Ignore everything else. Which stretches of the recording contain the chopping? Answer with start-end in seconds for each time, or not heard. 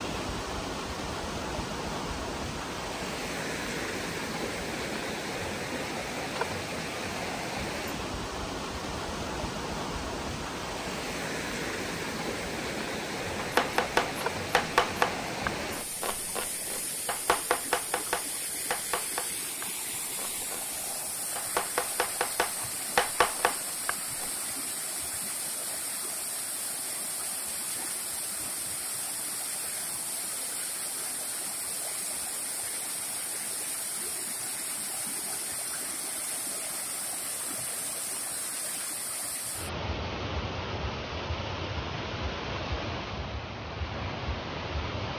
13.3-24.3.